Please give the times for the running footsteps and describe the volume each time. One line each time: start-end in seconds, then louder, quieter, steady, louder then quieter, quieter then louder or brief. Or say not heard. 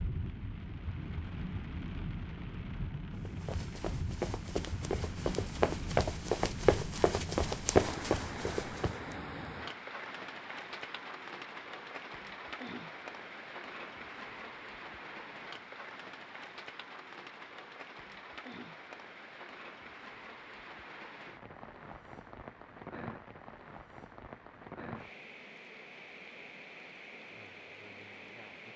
3.1-9.2 louder.